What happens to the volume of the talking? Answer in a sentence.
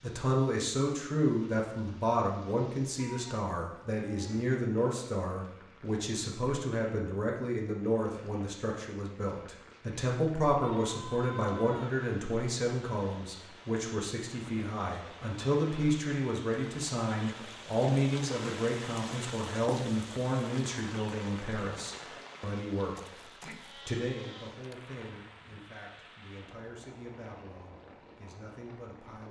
The loudness of the talking goes down.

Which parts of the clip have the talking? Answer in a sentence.
The talking can be heard from 0.0 to 22.9 s and from 23.9 to 29.2 s.